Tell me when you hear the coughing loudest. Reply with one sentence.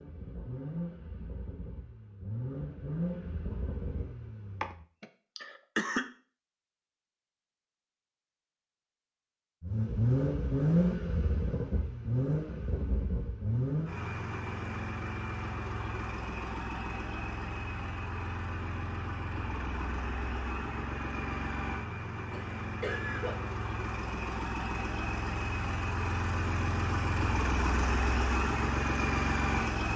The volume of the coughing peaks at 6 seconds.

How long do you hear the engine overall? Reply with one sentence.
The engine can be heard for 25 seconds in total.